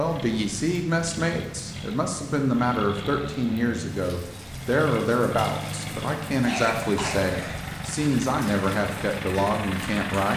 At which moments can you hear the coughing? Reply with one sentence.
You can hear the coughing from 6.4 to 7.7 s.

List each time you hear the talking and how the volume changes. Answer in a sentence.
The talking can be heard from 0.0 to 10.3 s, at a steady volume.